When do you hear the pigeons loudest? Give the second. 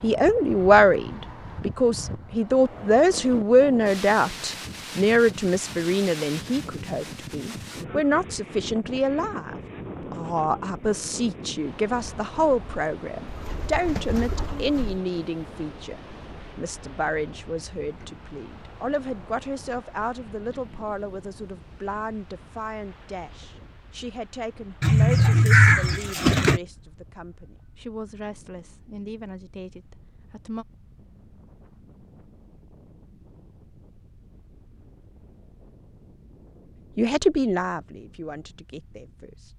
26 s.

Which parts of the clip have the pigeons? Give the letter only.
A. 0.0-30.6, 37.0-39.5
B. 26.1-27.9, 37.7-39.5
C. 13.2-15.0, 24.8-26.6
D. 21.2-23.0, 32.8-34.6
C.